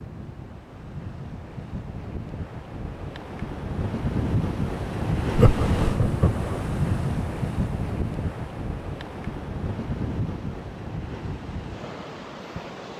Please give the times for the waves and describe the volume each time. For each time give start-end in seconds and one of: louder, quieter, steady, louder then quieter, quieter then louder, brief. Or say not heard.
0.0-12.9 louder then quieter.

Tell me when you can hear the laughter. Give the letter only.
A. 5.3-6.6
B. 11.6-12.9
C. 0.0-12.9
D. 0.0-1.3
A.